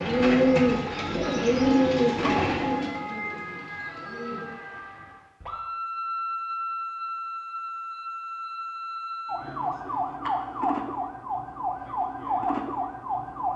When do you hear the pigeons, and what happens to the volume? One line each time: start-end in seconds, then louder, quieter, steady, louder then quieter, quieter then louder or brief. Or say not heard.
0.0-4.5 quieter.